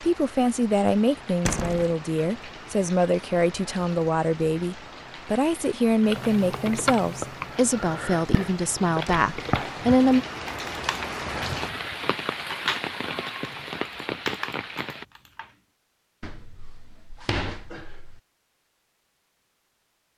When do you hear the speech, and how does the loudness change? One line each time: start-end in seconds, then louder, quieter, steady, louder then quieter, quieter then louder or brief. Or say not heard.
0.0-10.2 steady.